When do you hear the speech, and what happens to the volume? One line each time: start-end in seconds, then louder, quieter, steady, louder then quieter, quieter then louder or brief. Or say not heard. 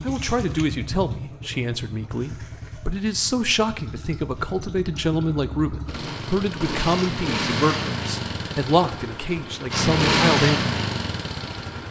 0.0-10.7 steady.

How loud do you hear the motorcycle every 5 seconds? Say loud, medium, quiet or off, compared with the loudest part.
quiet, medium, loud.